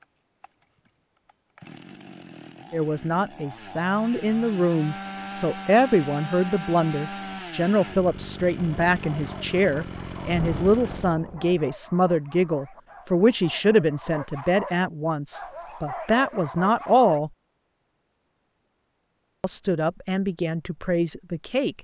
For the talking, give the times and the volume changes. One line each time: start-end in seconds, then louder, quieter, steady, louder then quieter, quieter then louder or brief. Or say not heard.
2.7-17.3 steady
19.4-21.7 brief.